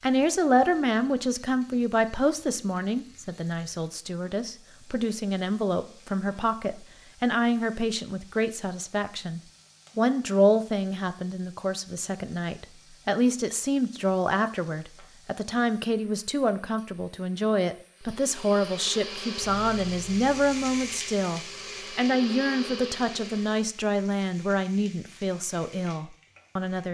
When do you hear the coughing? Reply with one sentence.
The coughing can't be heard in this clip.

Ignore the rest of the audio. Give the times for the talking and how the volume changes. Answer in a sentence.
The talking can be heard from 0.0 to 26.8 s, at a steady volume.